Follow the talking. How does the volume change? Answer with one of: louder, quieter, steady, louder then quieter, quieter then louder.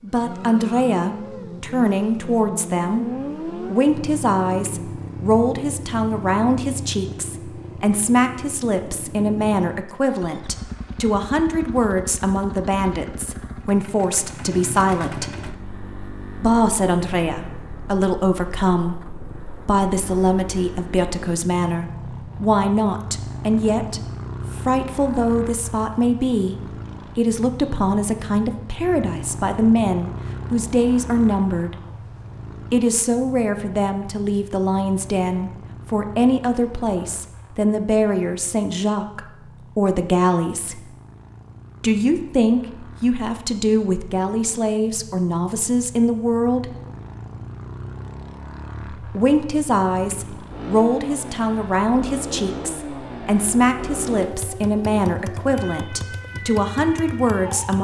steady.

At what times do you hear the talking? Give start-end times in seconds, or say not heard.
0.0-15.3, 16.4-31.8, 32.7-40.9, 41.8-46.8, 49.0-57.7.